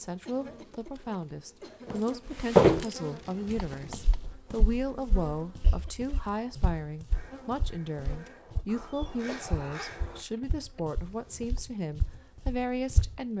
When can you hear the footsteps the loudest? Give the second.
3 s.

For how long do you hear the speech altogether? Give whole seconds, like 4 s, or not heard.
13 s.